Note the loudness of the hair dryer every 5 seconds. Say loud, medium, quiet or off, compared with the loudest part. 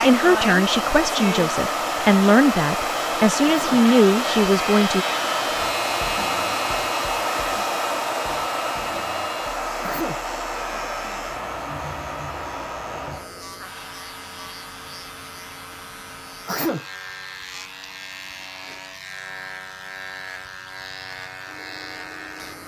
loud, loud, medium, quiet, quiet.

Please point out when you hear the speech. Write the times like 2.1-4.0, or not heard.
0.0-5.0.